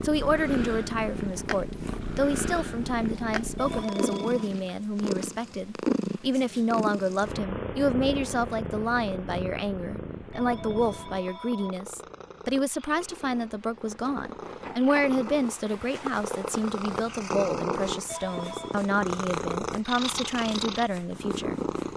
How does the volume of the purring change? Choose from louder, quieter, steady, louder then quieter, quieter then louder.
quieter then louder.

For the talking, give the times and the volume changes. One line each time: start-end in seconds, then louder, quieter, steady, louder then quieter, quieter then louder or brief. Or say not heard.
0.0-21.6 steady.